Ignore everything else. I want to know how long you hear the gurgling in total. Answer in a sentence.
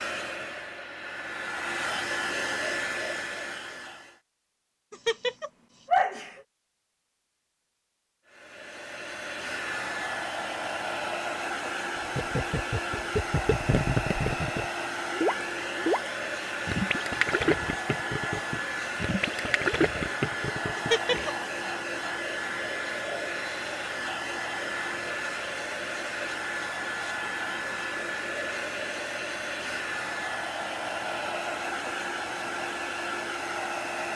You can hear the gurgling for 9 seconds altogether.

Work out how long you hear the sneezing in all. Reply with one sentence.
The sneezing can be heard for 2 seconds in total.